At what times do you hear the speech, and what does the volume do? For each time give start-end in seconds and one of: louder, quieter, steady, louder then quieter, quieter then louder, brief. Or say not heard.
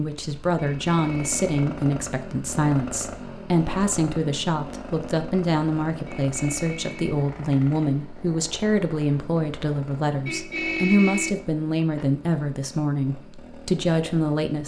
0.0-14.6 steady.